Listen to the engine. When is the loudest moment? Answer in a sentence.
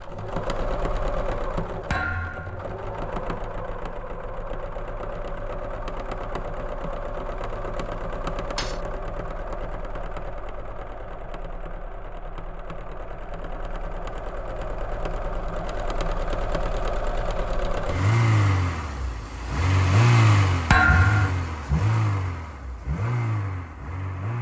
The volume of the engine peaks at 20 seconds.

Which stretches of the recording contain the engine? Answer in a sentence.
You can hear the engine from 0.0 to 24.3 s.